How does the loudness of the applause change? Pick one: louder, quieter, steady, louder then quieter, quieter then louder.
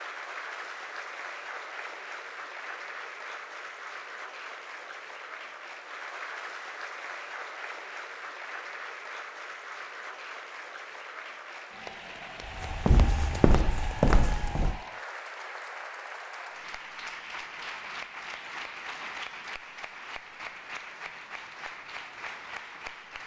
steady.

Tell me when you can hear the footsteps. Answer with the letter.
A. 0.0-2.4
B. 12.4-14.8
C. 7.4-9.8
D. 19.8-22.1
B.